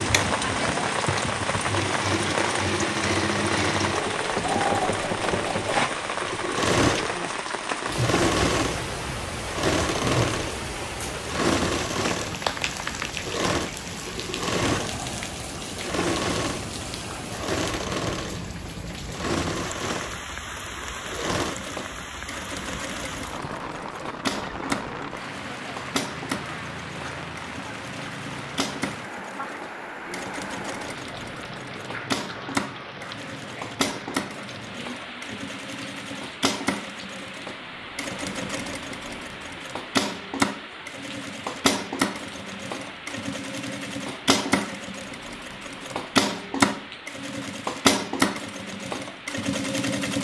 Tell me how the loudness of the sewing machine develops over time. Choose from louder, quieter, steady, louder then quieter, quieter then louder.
quieter then louder.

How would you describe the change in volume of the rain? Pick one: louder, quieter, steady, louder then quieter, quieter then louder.
quieter.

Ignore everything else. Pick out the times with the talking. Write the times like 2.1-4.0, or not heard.
not heard.